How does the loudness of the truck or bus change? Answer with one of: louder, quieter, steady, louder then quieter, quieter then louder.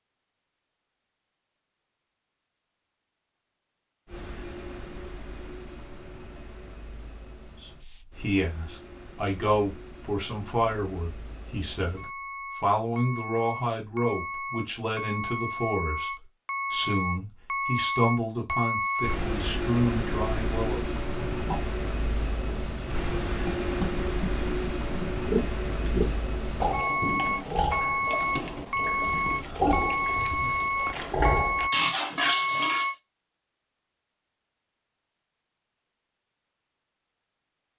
louder.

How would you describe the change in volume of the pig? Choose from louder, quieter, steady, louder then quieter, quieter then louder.
louder.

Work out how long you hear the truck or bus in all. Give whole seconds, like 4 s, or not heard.
29 s.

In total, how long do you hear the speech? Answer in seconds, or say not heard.
13 s.